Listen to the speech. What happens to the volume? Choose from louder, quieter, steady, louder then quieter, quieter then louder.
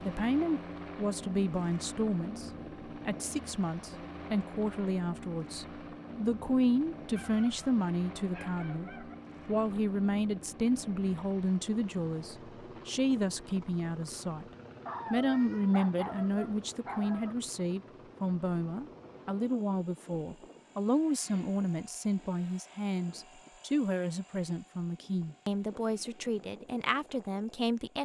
steady.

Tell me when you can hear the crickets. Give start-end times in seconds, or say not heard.
not heard.